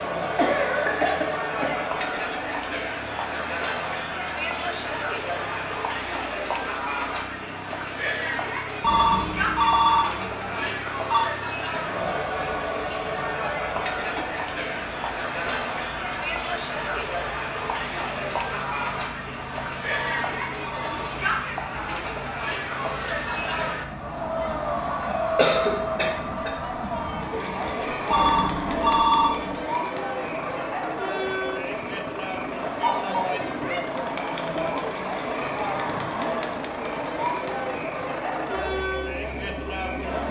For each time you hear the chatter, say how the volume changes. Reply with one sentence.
You can hear the chatter from 0.0 to 40.2 s, at a steady volume.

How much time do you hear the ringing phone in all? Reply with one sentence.
The ringing phone can be heard for 5 seconds in total.